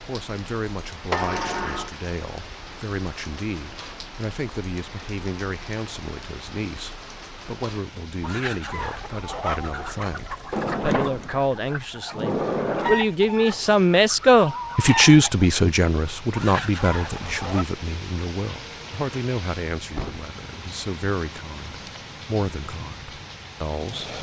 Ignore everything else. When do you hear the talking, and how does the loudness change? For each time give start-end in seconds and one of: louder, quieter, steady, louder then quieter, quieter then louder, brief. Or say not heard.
0.1-24.1 louder then quieter.